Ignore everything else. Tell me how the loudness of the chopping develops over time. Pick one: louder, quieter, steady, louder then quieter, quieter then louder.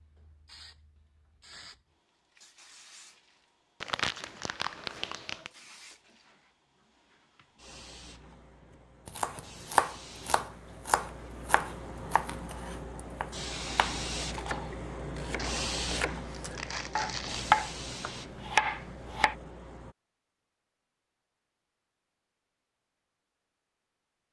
quieter then louder.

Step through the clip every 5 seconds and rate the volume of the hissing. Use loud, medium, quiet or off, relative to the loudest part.
quiet, quiet, loud, loud, off.